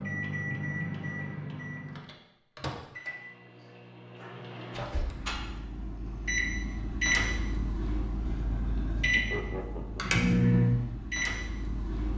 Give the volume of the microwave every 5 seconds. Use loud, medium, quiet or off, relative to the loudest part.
medium, medium, loud.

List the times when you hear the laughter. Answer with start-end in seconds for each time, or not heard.
9.1-10.2.